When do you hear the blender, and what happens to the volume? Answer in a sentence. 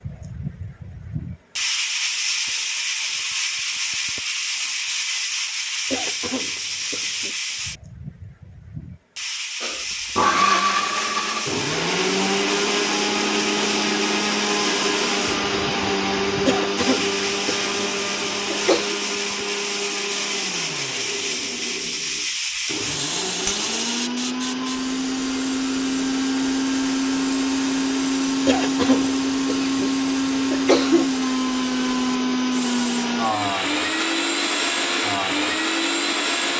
You can hear the blender from 9.6 to 36.5 s, getting quieter then louder.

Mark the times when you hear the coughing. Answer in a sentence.
You can hear the coughing from 5.9 to 7.3 s, from 16.4 to 18.9 s and from 28.4 to 31.1 s.